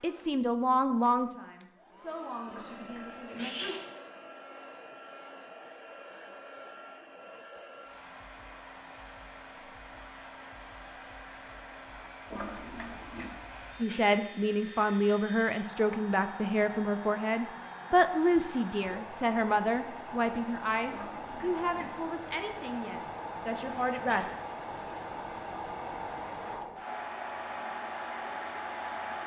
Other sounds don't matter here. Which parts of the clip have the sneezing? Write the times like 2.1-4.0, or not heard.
2.6-3.9, 13.2-14.0, 23.4-24.2.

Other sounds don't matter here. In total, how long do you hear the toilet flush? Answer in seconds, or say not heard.
3 s.